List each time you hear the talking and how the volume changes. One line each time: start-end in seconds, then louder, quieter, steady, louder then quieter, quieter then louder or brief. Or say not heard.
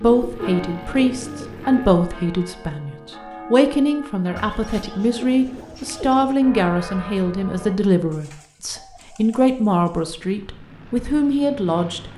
0.0-12.1 steady.